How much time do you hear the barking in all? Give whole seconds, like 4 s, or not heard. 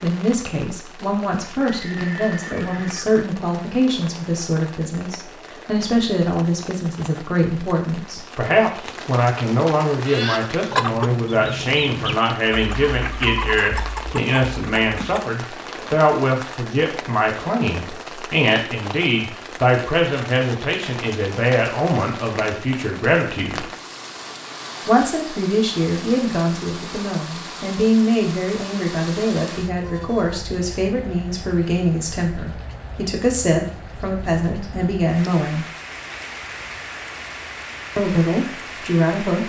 not heard.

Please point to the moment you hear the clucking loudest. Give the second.
11 s.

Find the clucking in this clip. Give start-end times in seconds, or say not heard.
9.9-15.2.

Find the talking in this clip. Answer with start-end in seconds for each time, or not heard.
0.0-23.7, 24.9-35.6, 38.0-39.4.